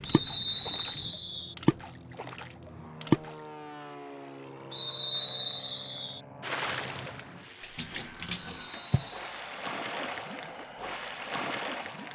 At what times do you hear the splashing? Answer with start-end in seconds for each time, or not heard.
0.0-3.4, 6.4-12.1.